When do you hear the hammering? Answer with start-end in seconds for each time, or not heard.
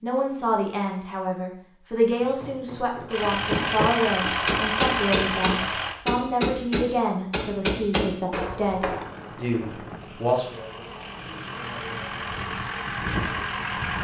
2.1-9.1.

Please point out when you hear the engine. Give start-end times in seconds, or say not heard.
3.0-6.0, 8.8-13.9.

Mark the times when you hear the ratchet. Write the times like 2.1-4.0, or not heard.
not heard.